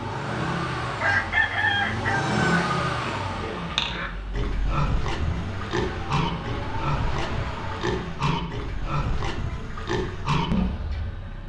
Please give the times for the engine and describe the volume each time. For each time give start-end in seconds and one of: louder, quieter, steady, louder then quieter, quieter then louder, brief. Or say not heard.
0.0-11.4 quieter.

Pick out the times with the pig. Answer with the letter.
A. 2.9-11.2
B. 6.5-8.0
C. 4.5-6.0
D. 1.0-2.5
A.